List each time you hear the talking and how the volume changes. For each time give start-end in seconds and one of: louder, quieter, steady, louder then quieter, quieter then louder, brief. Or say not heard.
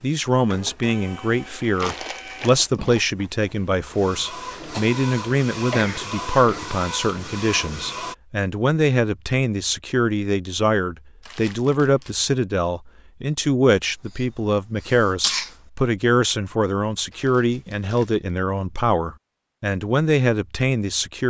0.0-21.2 steady.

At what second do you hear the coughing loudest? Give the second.
15 s.